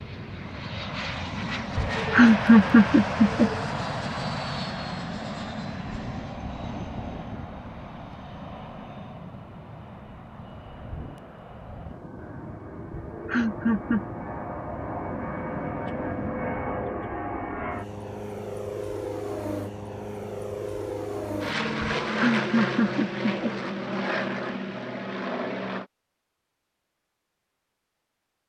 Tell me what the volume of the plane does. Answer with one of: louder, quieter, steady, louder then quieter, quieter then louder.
quieter then louder.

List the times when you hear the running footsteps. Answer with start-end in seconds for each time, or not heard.
not heard.